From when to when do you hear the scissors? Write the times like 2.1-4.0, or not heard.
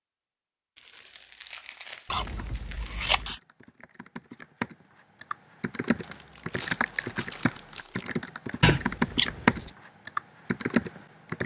2.1-3.4, 8.6-9.7.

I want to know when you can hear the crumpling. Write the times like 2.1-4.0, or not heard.
0.8-3.1, 6.0-8.1.